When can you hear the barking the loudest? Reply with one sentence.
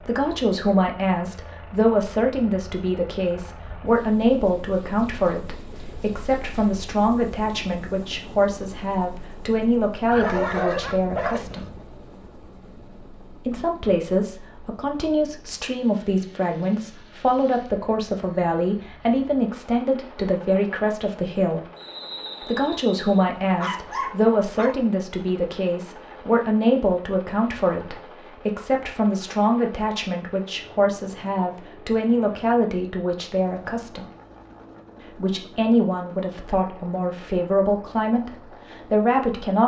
The volume of the barking peaks at 11 seconds.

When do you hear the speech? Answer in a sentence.
You can hear the speech from 0.0 to 11.7 s, from 13.4 to 21.6 s, from 22.4 to 34.1 s and from 35.1 to 39.6 s.